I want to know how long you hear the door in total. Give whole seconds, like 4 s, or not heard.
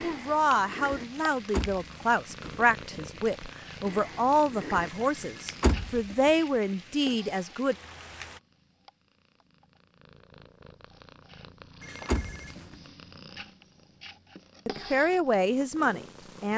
3 s.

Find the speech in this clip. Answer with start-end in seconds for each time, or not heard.
0.0-7.8, 14.7-16.5.